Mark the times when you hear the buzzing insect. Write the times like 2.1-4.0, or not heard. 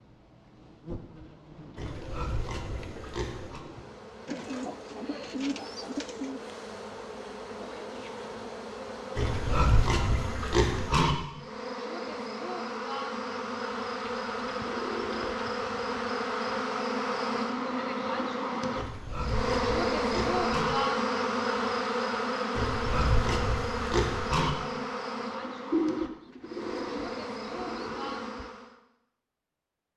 0.0-28.8.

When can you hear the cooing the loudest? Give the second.
26 s.